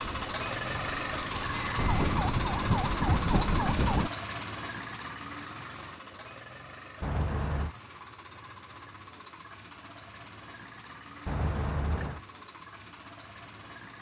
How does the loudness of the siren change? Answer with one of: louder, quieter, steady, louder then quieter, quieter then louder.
louder.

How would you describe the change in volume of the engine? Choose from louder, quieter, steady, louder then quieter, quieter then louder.
quieter.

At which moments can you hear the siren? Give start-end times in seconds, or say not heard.
0.0-4.1.